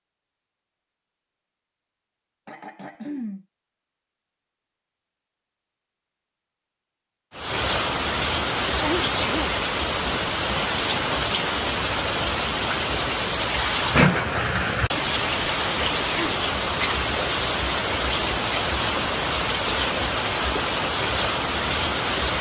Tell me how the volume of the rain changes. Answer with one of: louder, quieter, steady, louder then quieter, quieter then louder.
steady.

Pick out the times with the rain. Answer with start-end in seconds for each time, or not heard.
7.3-22.3.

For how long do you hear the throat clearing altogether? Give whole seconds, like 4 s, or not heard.
3 s.